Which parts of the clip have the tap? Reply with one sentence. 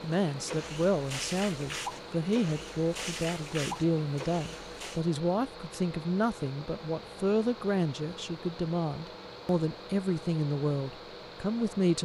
You can hear the tap from 0.1 to 5.0 s.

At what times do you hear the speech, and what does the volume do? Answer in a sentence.
The speech can be heard from 0.0 to 11.9 s, at a steady volume.